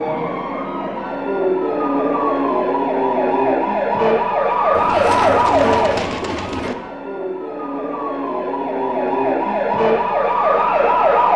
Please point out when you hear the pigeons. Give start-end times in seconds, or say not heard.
4.7-6.8.